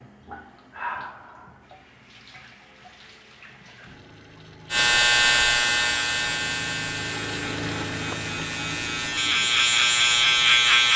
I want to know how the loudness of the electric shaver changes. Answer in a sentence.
The volume of the electric shaver goes down, then up.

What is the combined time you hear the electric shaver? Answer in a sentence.
The electric shaver can be heard for 6 seconds in total.